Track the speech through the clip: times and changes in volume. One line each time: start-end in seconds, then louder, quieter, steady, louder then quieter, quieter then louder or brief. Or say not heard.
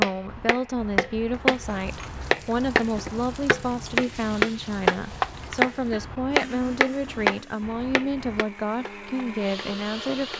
0.0-10.3 steady.